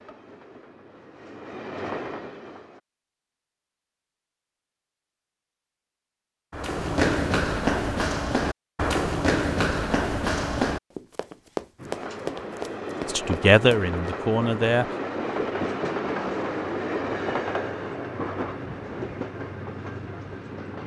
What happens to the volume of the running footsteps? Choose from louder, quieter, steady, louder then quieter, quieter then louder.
quieter.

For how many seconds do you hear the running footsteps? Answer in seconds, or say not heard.
8 s.